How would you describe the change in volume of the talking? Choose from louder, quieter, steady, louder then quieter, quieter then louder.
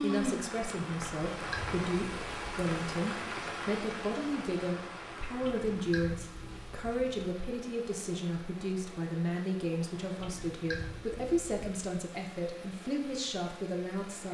steady.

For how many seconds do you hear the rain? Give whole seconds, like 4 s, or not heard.
14 s.